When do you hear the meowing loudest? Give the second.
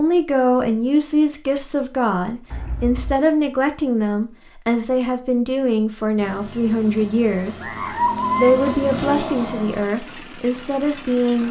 8 s.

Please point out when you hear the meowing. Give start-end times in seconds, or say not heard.
2.5-3.2, 6.5-8.9.